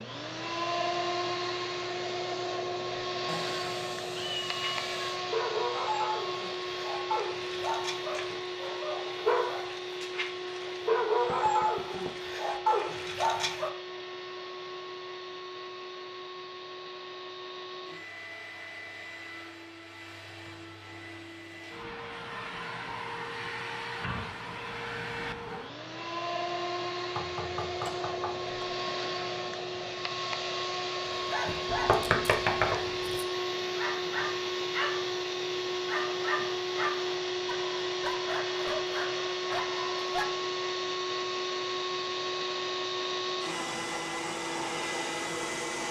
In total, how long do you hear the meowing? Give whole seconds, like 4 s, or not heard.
2 s.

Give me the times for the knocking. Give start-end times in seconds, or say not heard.
11.2-12.1, 27.1-28.5, 31.6-32.9.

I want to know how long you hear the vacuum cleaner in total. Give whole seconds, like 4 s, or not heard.
46 s.